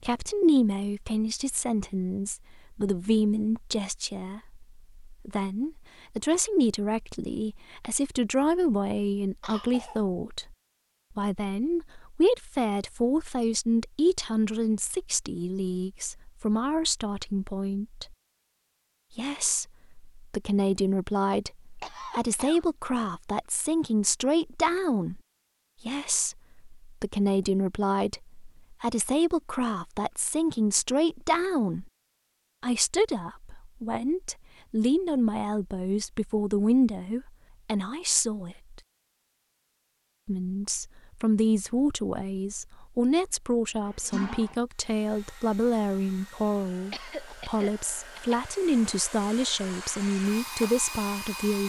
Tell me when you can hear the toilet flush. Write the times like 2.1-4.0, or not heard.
43.9-44.5.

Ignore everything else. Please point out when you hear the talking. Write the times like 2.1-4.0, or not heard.
0.0-10.6, 11.2-18.1, 19.1-25.2, 25.9-31.9, 32.6-38.8, 40.2-51.6.